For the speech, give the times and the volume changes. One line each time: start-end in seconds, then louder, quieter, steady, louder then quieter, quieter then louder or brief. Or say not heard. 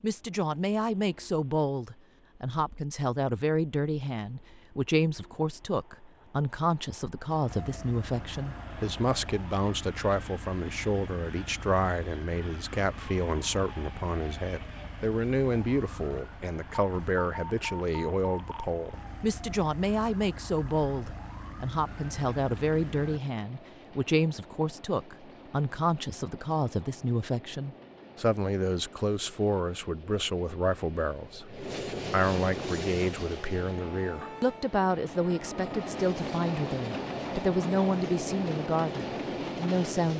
0.0-40.1 steady.